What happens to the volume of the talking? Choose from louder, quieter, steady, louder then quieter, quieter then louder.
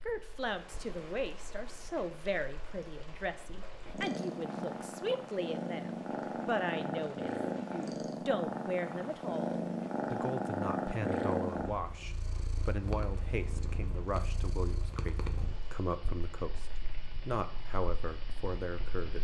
steady.